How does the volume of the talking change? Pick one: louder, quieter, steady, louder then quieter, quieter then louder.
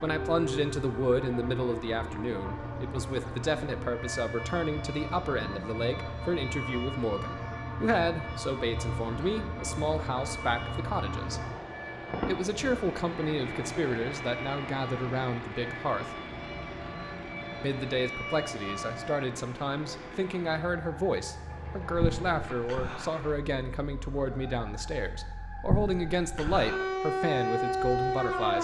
steady.